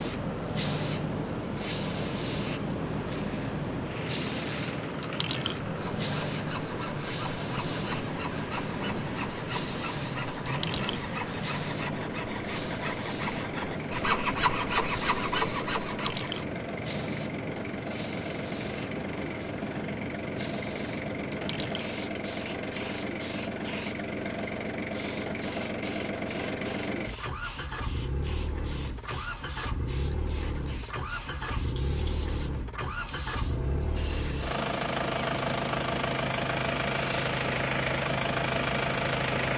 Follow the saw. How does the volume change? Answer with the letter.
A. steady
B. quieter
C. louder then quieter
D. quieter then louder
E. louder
E.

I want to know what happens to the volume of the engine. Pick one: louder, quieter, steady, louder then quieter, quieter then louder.
louder.